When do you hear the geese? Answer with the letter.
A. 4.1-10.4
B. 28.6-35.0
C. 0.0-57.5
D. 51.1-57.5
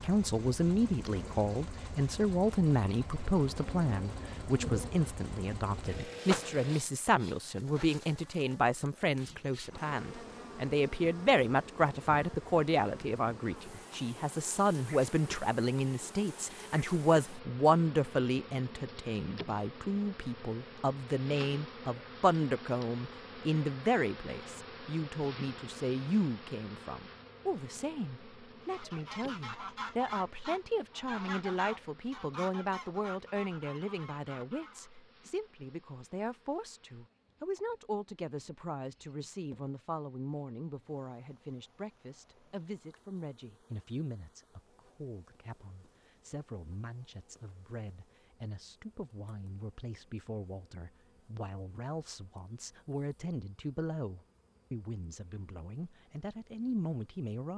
B.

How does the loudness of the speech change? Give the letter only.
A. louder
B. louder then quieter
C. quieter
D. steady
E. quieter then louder
C.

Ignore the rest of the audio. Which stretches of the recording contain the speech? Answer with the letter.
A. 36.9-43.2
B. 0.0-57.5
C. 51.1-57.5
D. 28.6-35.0
B.